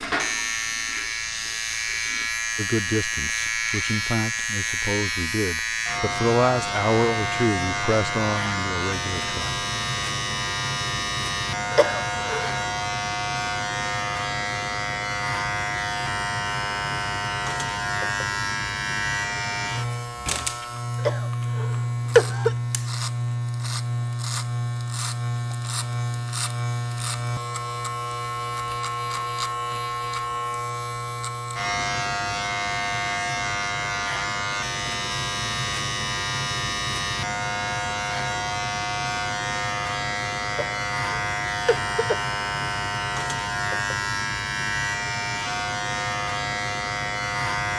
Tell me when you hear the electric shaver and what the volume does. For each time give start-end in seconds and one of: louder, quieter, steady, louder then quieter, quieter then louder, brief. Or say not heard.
0.0-47.7 steady.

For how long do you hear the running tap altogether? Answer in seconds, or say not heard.
2 s.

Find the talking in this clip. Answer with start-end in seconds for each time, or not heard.
2.5-9.7.